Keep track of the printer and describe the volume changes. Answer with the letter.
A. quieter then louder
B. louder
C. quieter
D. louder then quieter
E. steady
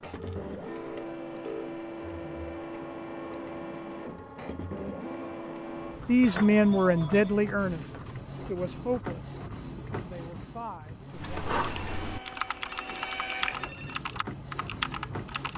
E.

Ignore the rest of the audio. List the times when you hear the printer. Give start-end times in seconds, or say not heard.
0.0-15.5.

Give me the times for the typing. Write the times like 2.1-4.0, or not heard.
11.1-15.5.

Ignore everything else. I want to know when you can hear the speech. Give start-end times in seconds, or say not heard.
6.0-11.3.